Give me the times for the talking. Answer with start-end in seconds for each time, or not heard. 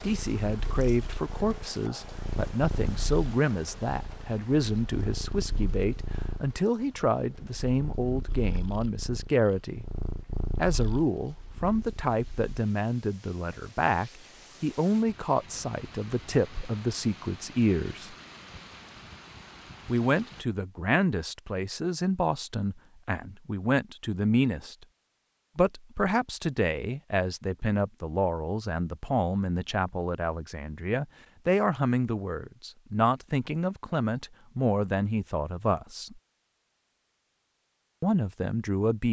0.0-9.8, 10.6-18.1, 19.9-24.9, 25.6-36.2, 38.0-39.0.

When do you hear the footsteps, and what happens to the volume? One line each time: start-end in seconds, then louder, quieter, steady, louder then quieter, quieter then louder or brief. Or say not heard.
not heard.